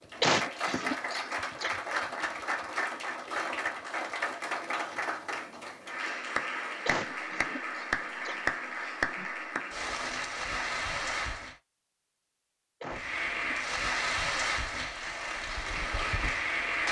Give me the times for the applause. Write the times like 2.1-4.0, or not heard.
0.0-11.6, 12.9-16.8.